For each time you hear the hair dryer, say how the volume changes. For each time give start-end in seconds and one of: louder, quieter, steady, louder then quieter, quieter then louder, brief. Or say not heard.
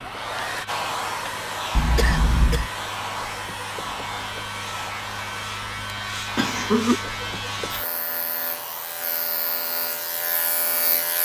0.0-11.1 quieter.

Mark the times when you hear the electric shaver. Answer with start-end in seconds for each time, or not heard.
0.0-11.1.